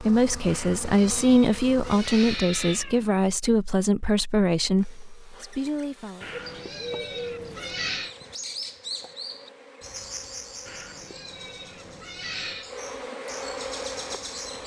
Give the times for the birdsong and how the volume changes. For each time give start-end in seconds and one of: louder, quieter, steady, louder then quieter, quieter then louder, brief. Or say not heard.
6.2-14.6 quieter then louder.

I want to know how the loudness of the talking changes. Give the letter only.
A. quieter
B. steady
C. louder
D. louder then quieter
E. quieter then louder
A.